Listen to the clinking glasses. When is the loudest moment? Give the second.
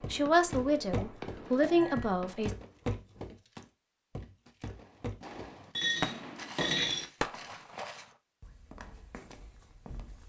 7 s.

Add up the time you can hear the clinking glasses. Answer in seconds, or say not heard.
3 s.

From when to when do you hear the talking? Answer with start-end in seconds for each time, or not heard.
0.1-2.5.